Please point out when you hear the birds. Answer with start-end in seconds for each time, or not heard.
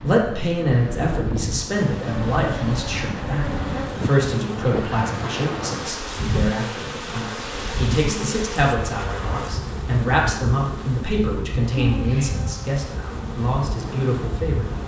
not heard.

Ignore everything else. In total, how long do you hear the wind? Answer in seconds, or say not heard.
15 s.